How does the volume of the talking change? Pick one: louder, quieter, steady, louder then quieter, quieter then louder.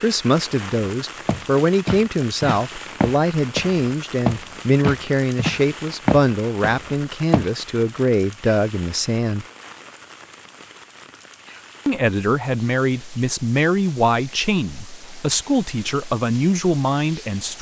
steady.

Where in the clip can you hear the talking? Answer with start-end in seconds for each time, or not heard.
0.0-9.4, 11.8-17.5.